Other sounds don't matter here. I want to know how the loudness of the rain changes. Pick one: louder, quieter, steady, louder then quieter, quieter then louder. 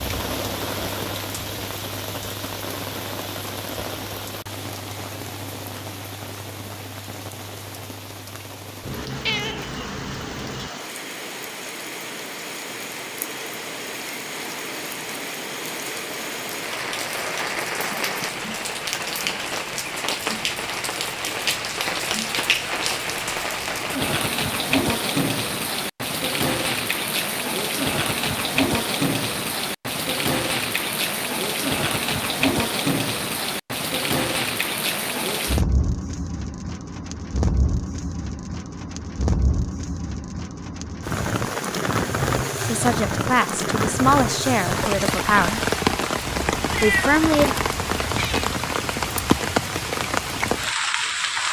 louder.